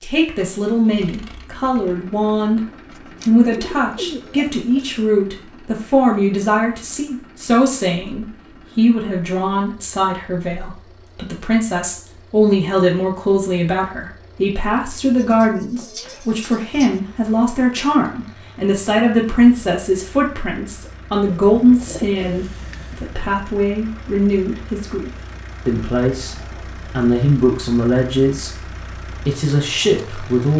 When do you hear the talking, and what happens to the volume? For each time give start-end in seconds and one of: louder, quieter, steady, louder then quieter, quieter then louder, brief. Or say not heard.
0.0-28.5 steady
29.1-30.5 brief.